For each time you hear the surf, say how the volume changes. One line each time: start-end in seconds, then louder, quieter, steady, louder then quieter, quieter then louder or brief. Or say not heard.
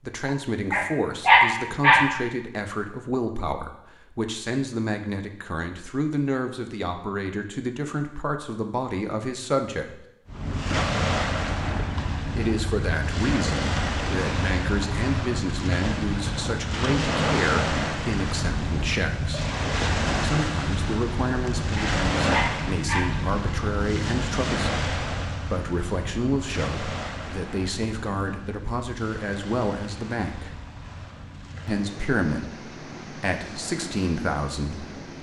10.2-35.1 quieter.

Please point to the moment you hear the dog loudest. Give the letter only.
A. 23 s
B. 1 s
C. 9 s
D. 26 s
B.